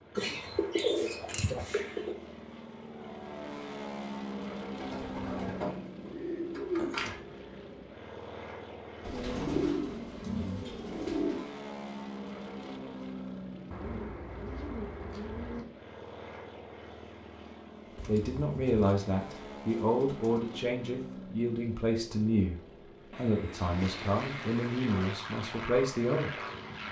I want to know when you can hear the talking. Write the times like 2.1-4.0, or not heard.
18.1-26.3.